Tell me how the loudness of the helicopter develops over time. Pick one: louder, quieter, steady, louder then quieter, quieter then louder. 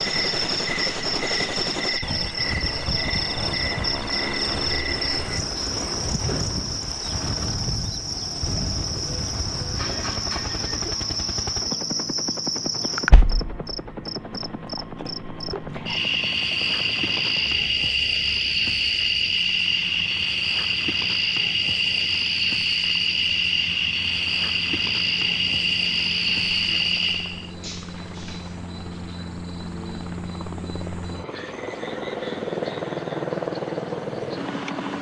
quieter then louder.